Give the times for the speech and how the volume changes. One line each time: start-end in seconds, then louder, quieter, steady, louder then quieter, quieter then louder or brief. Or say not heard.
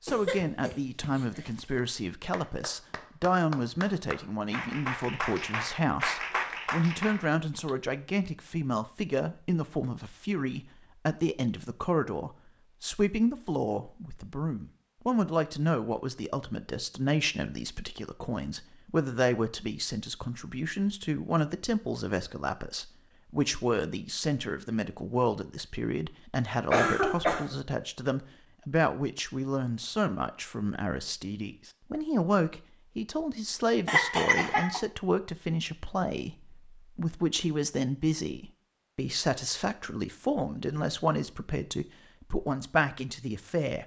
0.0-43.8 steady.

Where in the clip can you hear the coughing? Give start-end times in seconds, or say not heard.
0.1-1.6, 26.7-27.6, 33.9-34.8.